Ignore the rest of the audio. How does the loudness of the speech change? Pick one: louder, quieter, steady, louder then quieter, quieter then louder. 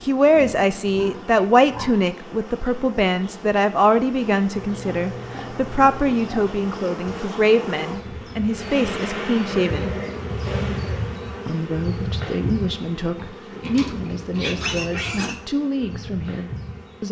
quieter.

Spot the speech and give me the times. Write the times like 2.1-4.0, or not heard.
0.0-9.9, 11.4-17.0.